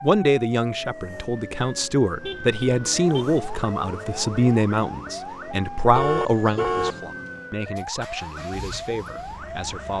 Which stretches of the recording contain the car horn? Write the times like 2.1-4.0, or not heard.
2.2-3.3, 6.0-7.0.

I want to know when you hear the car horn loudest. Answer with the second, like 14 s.
7 s.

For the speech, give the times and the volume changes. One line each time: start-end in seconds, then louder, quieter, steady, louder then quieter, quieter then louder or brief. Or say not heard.
0.0-9.9 quieter.